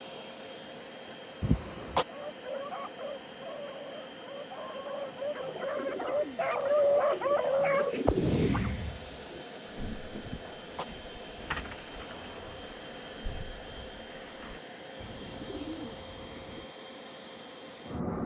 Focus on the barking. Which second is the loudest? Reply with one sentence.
The loudest moment of the barking is at 7 seconds.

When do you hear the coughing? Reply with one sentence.
The coughing can be heard from 1.4 to 2.0 s and from 10.2 to 10.8 s.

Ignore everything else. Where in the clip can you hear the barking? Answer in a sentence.
You can hear the barking from 2.0 to 8.7 s.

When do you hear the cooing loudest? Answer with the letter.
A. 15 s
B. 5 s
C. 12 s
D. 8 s
D.